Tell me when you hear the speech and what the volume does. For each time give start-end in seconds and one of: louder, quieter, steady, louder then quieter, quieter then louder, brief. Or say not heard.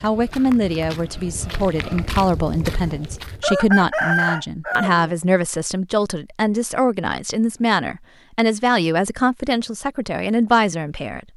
0.0-11.2 steady.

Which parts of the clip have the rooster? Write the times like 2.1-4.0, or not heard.
3.4-5.1.